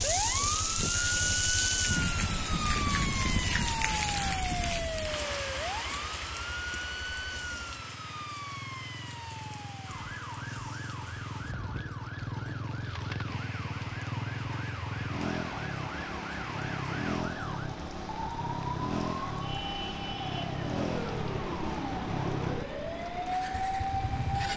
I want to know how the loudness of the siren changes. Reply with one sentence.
The loudness of the siren goes down, then up.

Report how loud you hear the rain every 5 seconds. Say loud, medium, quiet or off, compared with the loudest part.
loud, medium, quiet, quiet, quiet.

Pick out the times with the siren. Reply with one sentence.
The siren can be heard from 0.0 to 24.5 s.